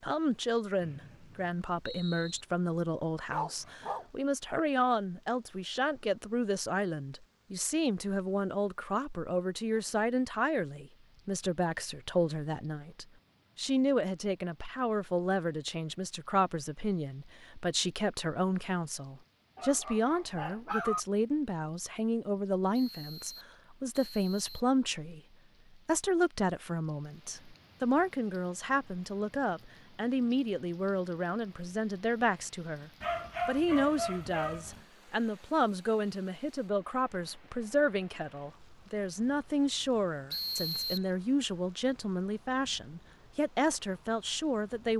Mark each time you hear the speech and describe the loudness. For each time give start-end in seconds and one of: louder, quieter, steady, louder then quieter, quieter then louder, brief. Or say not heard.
0.0-25.2 steady
25.9-44.9 steady.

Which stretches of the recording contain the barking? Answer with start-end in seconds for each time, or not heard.
3.3-4.0, 19.6-21.0, 33.0-34.9.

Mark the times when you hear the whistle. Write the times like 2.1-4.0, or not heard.
0.8-2.5, 22.7-24.8, 40.3-41.1.